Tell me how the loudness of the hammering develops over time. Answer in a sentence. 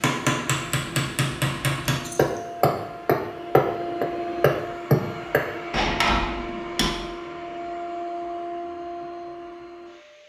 The loudness of the hammering goes up, then down.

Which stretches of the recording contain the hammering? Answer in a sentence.
You can hear the hammering from 0.0 to 7.0 s.